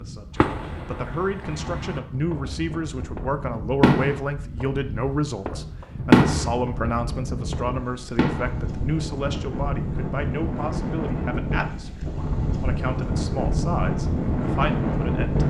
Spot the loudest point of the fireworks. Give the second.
6 s.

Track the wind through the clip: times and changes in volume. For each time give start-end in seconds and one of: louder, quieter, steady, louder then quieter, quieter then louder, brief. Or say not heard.
0.0-15.4 louder.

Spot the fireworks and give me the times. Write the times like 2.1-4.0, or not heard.
0.3-4.7, 5.5-6.7, 7.5-8.6.